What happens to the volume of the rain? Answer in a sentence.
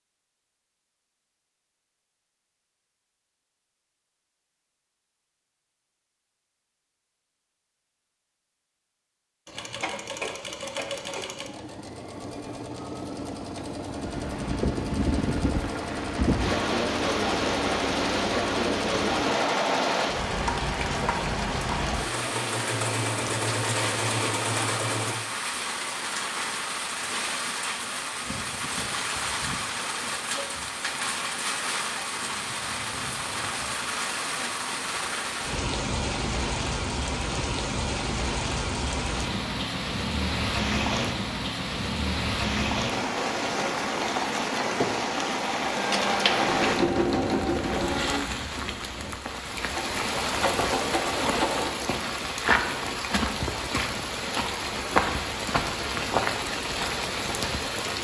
The volume of the rain stays about the same.